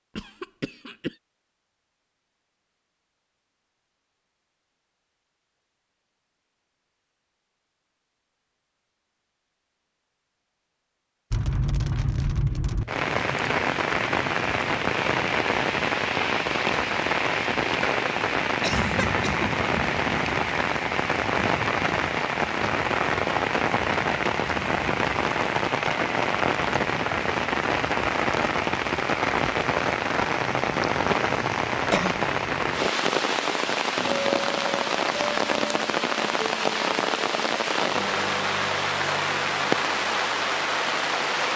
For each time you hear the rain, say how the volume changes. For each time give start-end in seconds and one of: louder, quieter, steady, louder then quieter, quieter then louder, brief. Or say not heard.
11.3-41.5 steady.